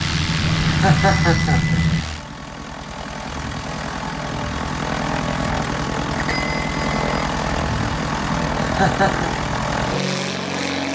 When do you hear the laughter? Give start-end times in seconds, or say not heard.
0.7-2.1, 8.6-9.3.